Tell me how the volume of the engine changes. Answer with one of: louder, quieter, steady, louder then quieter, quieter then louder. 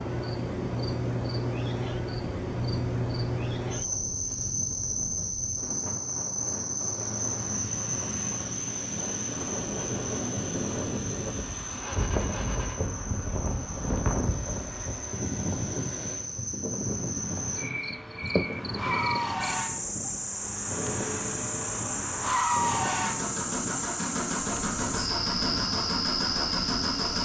louder.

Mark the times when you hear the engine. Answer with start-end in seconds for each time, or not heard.
6.8-27.1.